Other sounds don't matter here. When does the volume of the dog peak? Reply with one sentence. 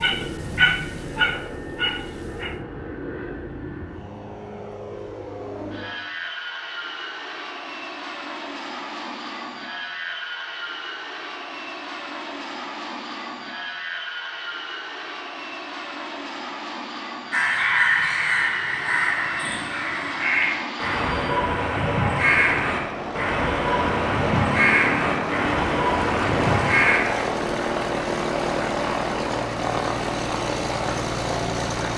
The volume of the dog peaks at 1 second.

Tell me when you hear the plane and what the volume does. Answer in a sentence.
The plane can be heard from 0.0 to 31.9 s, getting louder.